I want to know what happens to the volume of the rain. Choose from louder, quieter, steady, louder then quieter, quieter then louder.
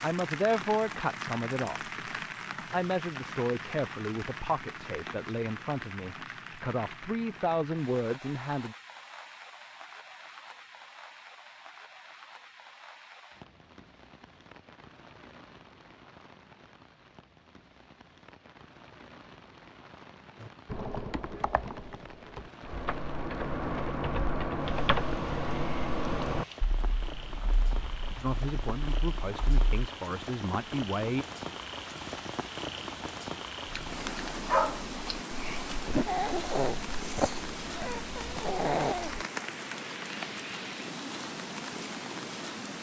quieter then louder.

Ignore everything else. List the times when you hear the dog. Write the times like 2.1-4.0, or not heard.
33.6-39.2.